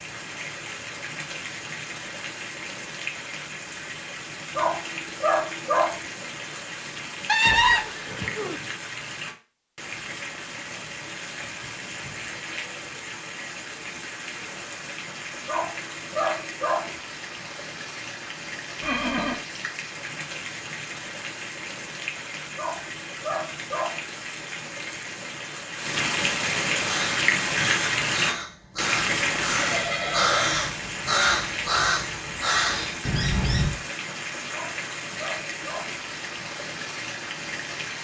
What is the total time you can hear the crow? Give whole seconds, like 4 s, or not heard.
7 s.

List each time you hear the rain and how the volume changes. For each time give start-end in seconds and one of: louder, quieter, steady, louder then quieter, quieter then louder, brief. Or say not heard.
0.0-38.0 louder then quieter.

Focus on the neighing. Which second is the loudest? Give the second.
8 s.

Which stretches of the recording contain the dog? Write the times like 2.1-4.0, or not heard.
4.5-6.0, 15.4-17.0, 22.6-24.1, 34.5-36.0.